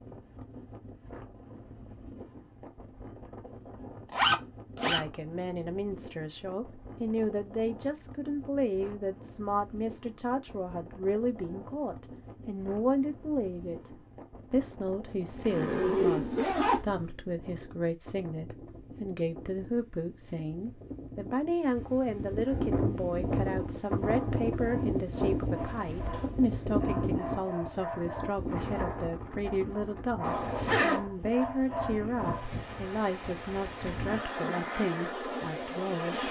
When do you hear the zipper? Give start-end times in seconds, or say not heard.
4.1-5.0, 15.3-17.1, 30.2-31.1.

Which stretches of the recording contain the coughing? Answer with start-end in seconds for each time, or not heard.
25.6-26.3.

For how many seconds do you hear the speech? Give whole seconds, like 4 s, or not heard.
31 s.